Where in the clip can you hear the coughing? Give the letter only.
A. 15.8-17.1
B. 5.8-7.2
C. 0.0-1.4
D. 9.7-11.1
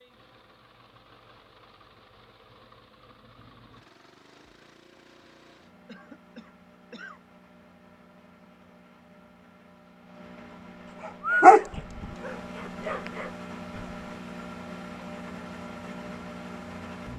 B.